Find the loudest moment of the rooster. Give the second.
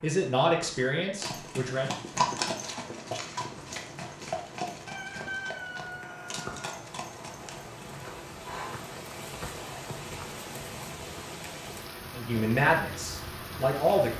5 s.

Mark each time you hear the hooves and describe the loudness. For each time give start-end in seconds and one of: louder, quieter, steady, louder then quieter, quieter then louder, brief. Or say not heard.
1.2-8.1 quieter.